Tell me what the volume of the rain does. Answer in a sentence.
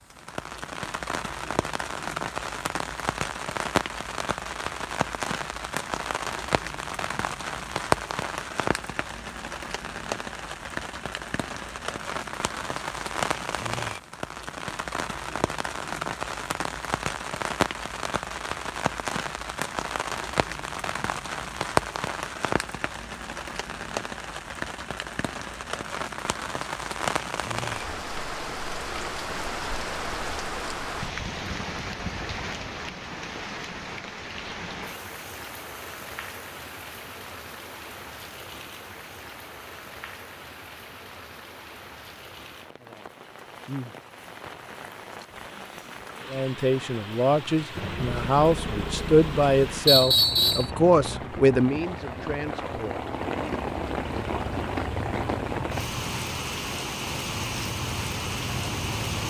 The volume of the rain goes down, then up.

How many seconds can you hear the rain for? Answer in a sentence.
The rain can be heard for 59 seconds in total.